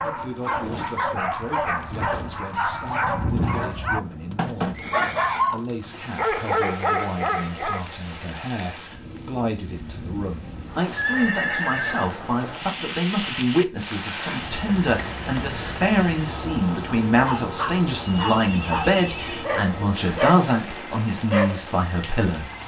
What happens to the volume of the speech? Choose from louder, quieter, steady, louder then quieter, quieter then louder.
louder.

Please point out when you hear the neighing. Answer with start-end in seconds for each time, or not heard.
4.7-5.5, 10.4-12.2, 18.1-19.5.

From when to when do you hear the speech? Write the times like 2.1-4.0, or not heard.
0.0-22.5.